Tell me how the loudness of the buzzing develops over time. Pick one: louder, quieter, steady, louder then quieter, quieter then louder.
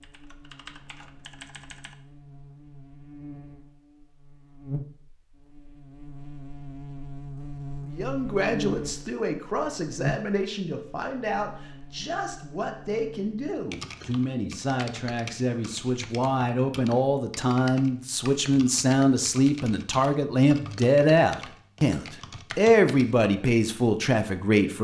louder then quieter.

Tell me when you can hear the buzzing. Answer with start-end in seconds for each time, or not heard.
0.0-13.7.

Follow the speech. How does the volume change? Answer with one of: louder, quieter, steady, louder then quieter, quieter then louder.
louder.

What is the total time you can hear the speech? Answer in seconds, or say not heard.
17 s.